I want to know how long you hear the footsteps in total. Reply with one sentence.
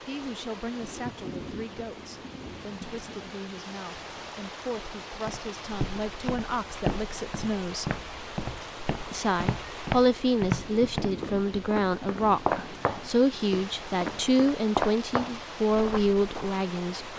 The footsteps can be heard for 11 seconds in total.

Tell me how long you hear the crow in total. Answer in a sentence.
The crow can't be heard in this clip.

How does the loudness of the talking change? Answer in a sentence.
The loudness of the talking goes up.